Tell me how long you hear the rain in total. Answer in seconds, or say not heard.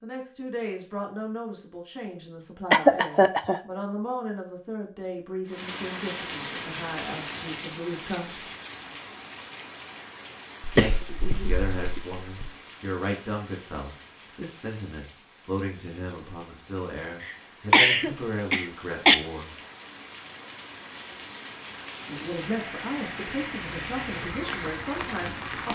20 s.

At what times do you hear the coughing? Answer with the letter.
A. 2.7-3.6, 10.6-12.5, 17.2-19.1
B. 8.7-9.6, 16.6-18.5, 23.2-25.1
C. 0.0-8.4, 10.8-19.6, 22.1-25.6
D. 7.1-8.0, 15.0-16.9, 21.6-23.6
A.